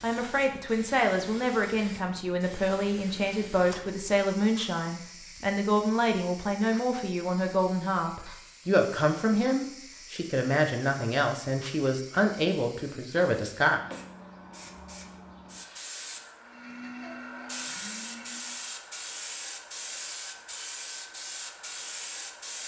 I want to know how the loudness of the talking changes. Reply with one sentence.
The loudness of the talking stays about the same.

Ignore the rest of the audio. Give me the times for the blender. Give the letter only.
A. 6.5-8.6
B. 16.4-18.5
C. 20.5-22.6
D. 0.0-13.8
B.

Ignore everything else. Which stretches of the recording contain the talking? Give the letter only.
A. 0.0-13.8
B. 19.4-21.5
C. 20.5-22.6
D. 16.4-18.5
A.